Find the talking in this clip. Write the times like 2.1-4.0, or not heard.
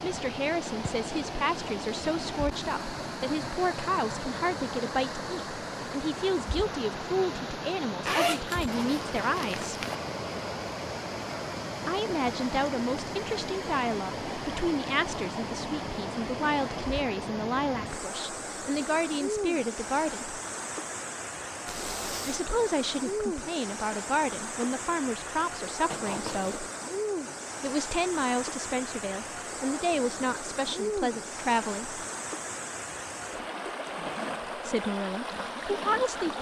0.0-9.8, 11.8-20.4, 22.2-26.6, 27.6-32.0, 34.5-36.3.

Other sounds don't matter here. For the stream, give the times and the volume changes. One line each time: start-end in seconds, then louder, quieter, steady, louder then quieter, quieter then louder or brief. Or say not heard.
0.0-36.3 steady.